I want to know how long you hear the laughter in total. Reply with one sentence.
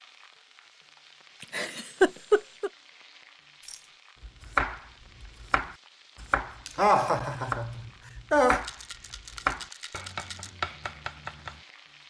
You can hear the laughter for 3 seconds altogether.